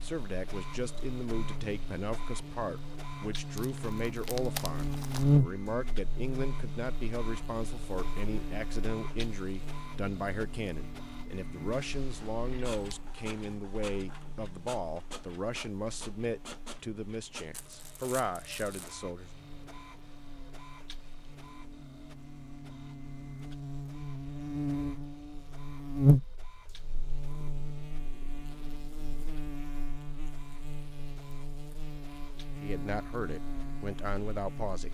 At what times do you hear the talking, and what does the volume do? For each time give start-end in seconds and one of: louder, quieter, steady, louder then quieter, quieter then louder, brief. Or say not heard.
0.0-19.3 steady
32.6-34.9 brief.